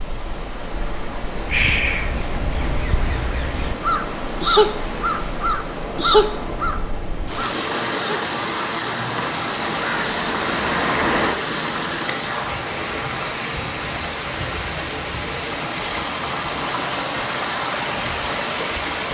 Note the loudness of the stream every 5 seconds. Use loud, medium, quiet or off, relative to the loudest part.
medium, loud, loud, loud.